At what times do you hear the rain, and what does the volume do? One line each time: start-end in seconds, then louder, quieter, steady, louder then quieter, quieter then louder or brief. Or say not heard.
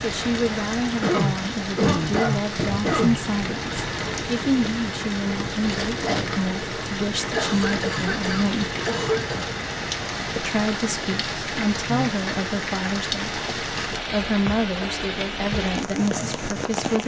0.0-17.0 steady.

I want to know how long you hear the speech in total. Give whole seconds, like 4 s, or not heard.
15 s.